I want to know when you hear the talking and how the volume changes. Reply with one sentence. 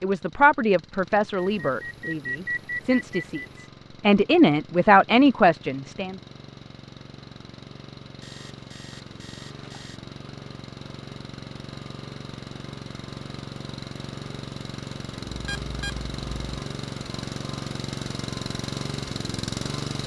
The talking can be heard from 0.0 to 6.2 s, getting quieter then louder.